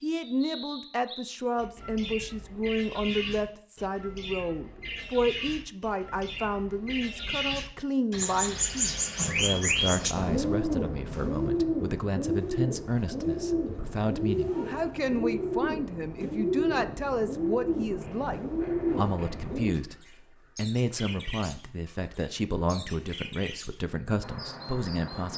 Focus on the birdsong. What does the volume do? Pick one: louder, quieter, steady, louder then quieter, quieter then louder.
louder then quieter.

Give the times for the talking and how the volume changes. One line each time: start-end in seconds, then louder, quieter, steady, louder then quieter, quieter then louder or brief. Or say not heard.
0.0-25.3 steady.